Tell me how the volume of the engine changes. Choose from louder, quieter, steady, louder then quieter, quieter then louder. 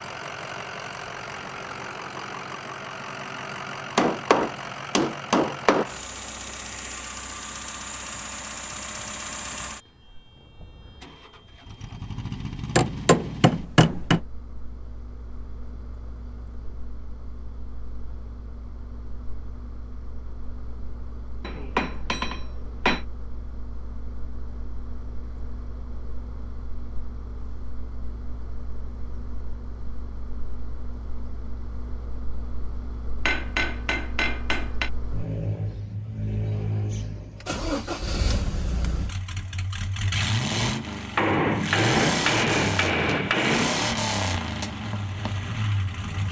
quieter then louder.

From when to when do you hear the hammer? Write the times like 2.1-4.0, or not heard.
4.0-5.8, 12.8-14.2, 21.4-23.1, 33.2-34.9, 41.1-43.8.